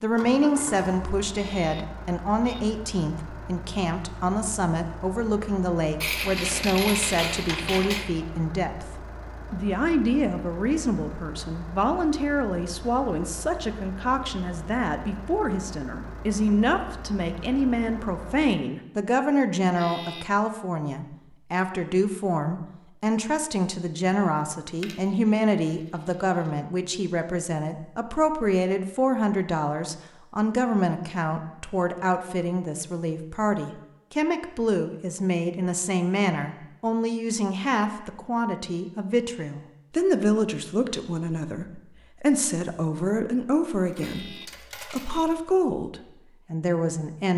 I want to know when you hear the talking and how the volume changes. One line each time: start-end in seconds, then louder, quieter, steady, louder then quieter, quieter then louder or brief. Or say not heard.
0.0-47.3 steady.